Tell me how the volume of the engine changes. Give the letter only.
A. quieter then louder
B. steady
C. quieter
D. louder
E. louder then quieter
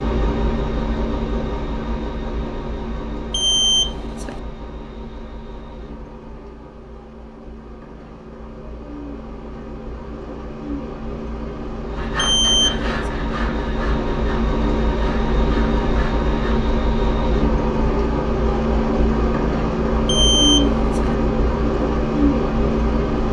A.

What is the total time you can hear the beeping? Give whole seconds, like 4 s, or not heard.
3 s.